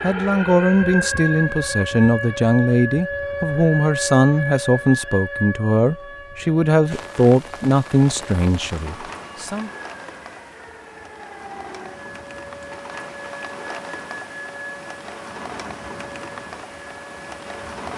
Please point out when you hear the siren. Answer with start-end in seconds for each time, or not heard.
0.0-17.9.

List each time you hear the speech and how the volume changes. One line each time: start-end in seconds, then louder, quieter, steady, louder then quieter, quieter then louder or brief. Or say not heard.
0.0-9.7 steady.